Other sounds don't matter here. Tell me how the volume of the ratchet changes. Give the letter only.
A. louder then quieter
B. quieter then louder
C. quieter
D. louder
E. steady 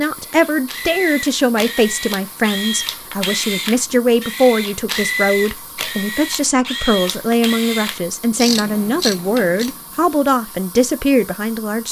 E.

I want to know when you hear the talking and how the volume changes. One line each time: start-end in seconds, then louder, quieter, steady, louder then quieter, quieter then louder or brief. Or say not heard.
0.0-11.8 steady.